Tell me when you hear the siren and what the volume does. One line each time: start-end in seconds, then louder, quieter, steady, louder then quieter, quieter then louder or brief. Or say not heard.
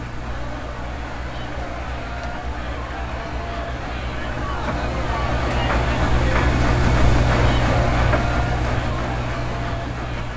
not heard.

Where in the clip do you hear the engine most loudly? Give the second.
7 s.